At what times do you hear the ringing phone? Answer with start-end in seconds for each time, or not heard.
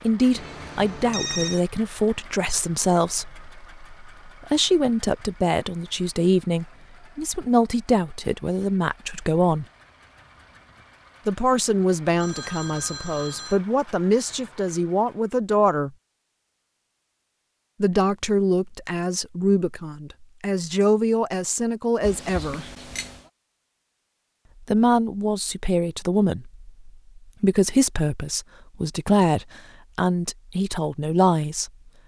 0.3-1.6, 12.2-13.6, 22.0-23.3.